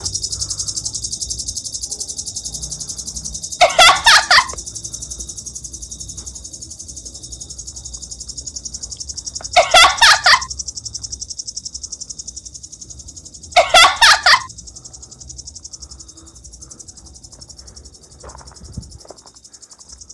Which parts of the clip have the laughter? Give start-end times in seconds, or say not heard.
3.6-4.5, 9.6-10.4, 13.6-14.4.